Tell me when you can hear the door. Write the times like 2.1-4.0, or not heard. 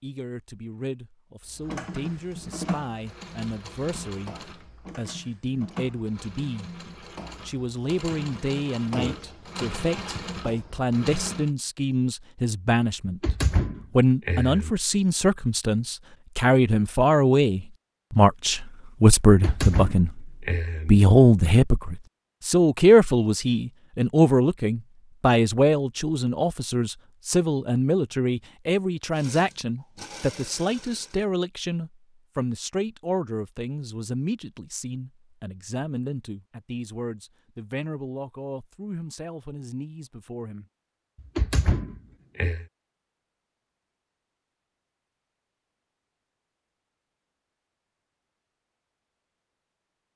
13.1-14.8, 19.2-20.9, 41.4-42.6.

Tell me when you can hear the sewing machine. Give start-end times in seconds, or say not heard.
1.5-11.5, 29.1-31.2.